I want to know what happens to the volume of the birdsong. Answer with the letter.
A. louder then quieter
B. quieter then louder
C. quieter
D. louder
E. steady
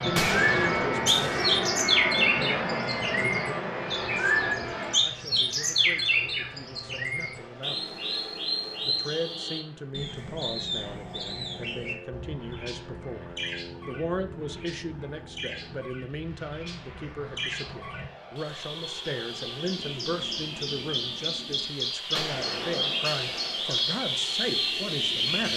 B.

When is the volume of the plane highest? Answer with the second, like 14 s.
2 s.